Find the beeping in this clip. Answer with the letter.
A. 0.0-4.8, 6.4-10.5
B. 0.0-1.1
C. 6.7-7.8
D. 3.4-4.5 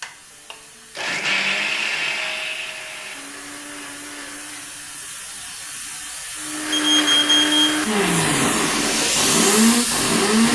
C.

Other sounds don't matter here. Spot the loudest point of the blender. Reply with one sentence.
The volume of the blender peaks at 10 seconds.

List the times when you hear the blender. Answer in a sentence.
The blender can be heard from 0.0 to 4.8 s and from 6.4 to 10.5 s.